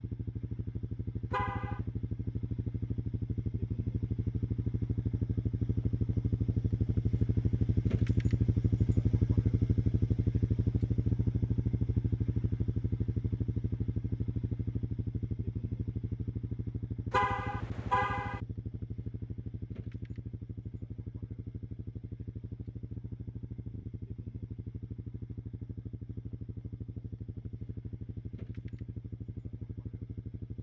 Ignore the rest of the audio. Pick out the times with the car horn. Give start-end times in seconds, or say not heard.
1.3-1.8, 17.1-18.4.